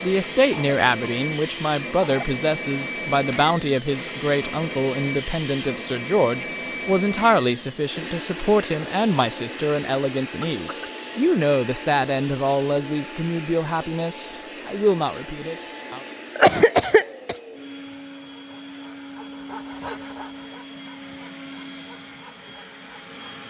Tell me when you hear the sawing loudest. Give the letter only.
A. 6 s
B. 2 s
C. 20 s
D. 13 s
C.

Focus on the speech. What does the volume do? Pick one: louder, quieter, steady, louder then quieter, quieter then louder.
steady.